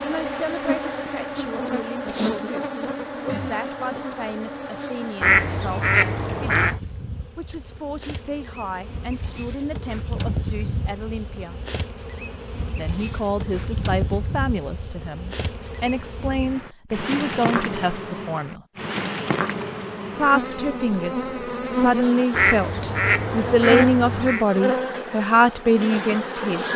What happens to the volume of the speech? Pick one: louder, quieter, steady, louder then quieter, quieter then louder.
louder.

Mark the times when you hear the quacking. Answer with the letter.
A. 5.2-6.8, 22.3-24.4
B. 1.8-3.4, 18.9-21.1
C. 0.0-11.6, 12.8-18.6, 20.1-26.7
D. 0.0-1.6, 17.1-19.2
A.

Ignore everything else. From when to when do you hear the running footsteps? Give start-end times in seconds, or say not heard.
not heard.